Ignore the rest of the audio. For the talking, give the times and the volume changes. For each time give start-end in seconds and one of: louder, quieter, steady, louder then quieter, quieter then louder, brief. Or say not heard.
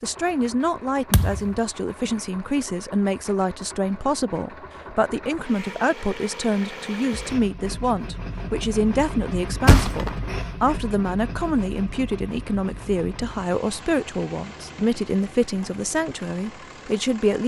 0.0-17.4 steady.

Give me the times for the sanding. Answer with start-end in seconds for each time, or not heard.
not heard.